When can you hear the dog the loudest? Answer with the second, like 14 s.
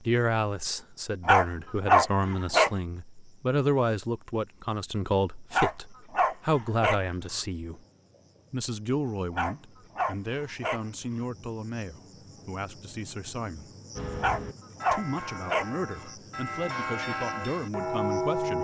2 s.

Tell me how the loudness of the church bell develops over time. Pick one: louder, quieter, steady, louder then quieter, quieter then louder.
louder.